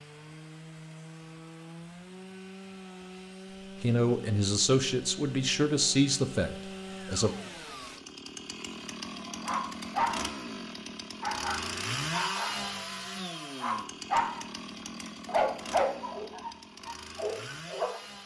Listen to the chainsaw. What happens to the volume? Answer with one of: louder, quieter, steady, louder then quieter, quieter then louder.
louder then quieter.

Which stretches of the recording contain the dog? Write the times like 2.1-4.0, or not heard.
9.2-10.3, 11.2-14.4, 15.2-18.0.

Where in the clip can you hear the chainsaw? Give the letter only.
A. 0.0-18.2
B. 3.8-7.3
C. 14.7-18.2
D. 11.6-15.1
A.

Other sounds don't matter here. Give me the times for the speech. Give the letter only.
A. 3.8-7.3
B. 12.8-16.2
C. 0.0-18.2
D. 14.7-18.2
A.